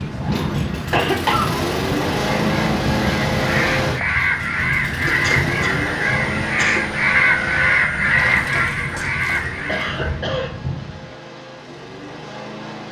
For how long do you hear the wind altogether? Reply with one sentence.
You can hear the wind for 11 seconds altogether.